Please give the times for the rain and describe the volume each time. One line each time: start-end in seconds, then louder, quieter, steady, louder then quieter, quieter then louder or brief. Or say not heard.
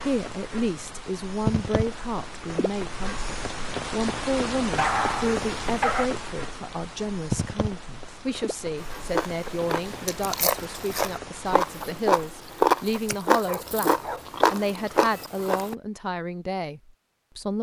0.0-13.2 quieter.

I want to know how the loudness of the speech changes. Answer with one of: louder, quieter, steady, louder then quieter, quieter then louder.
steady.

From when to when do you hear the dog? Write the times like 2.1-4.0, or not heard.
4.8-6.0, 13.4-14.3.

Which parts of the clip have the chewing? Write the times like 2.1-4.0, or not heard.
8.8-15.8.